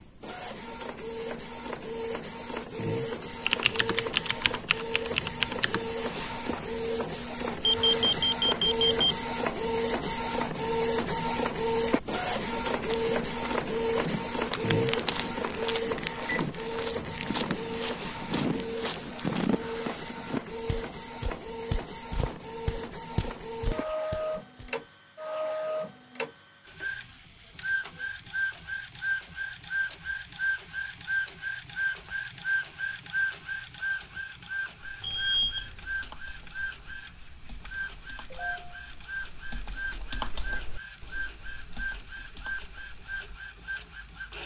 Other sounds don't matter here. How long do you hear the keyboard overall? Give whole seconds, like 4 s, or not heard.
11 s.